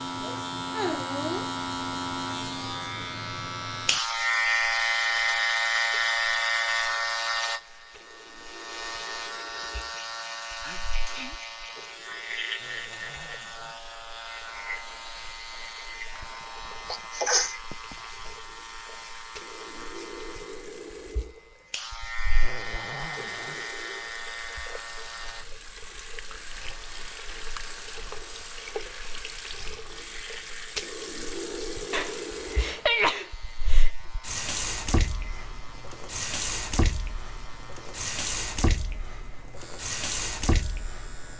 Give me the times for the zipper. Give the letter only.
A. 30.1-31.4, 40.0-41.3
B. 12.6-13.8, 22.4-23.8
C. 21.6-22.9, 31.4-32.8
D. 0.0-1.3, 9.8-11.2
B.